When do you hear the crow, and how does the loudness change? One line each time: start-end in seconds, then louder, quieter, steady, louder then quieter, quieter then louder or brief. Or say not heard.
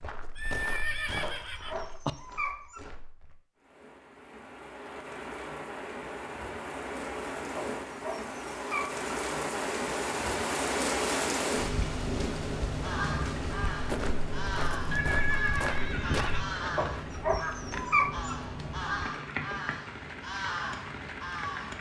12.7-21.7 steady.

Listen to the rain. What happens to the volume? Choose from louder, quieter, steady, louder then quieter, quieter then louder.
louder then quieter.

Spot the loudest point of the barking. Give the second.
18 s.